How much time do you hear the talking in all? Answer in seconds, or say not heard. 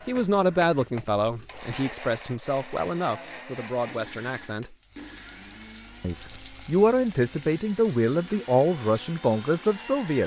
9 s.